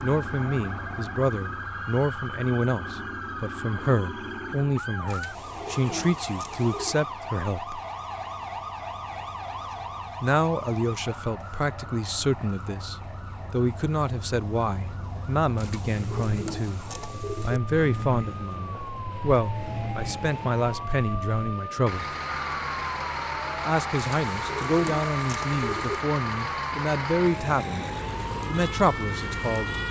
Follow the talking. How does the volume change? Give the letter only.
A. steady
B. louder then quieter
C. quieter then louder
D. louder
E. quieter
A.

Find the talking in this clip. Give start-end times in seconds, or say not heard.
0.0-7.8, 10.2-22.1, 23.6-29.7.